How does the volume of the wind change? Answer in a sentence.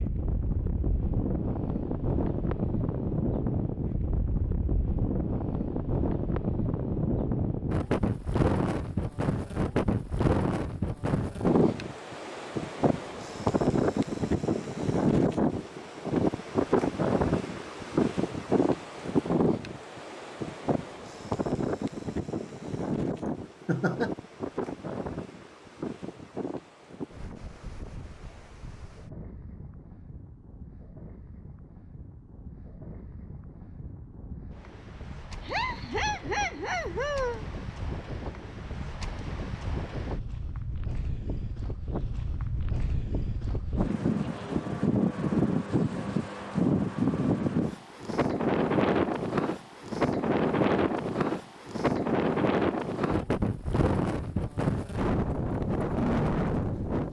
The volume of the wind goes down, then up.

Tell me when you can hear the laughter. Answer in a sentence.
The laughter can be heard from 23.2 to 24.1 s and from 35.4 to 37.5 s.